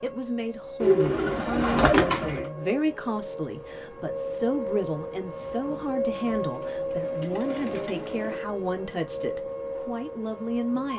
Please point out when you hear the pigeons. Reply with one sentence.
You can hear the pigeons from 0.8 to 2.5 s and from 6.2 to 8.4 s.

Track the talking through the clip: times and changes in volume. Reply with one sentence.
The talking can be heard from 0.0 to 10.9 s, at a steady volume.